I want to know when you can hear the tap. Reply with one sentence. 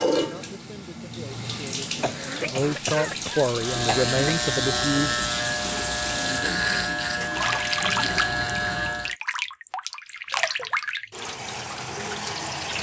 You can hear the tap from 0.0 to 12.7 s.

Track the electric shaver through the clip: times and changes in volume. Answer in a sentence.
You can hear the electric shaver from 3.5 to 9.2 s, at a steady volume.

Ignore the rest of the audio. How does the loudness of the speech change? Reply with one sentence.
The loudness of the speech goes up.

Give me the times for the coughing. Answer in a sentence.
The coughing can be heard from 2.0 to 4.3 s.